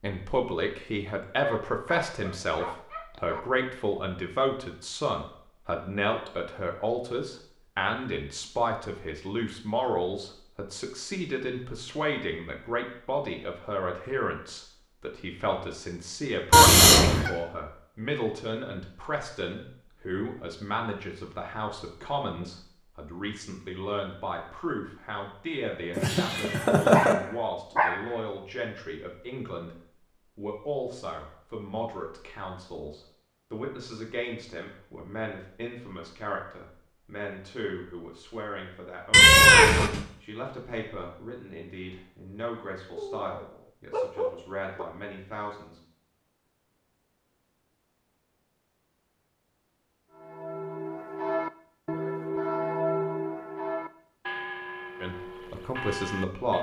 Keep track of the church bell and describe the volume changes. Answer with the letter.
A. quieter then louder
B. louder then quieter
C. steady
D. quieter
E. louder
D.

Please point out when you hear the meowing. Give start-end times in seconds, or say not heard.
16.5-17.3, 25.9-27.1, 39.1-40.0.